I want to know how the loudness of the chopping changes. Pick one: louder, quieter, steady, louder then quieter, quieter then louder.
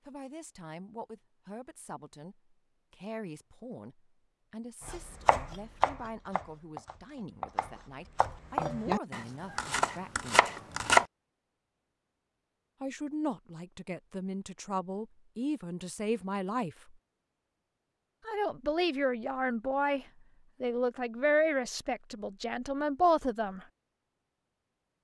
quieter then louder.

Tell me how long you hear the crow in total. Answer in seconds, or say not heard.
not heard.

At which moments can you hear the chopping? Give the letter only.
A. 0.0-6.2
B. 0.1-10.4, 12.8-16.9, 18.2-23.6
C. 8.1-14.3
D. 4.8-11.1
D.